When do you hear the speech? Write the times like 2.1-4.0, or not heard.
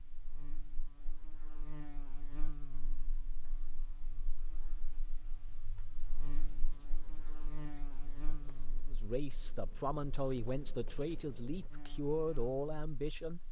8.8-13.4.